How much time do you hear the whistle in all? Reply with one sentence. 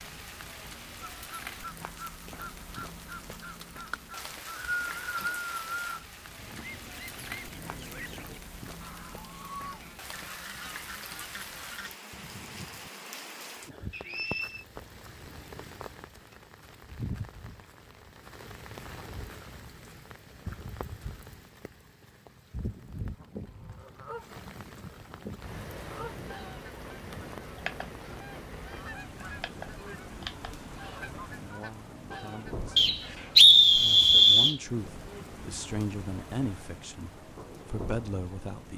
The whistle can be heard for 4 seconds in total.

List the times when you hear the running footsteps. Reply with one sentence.
You can't hear the running footsteps here.